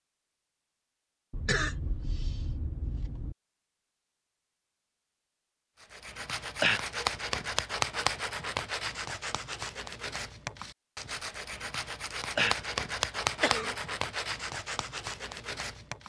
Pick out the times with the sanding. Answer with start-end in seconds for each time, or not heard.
5.8-16.0.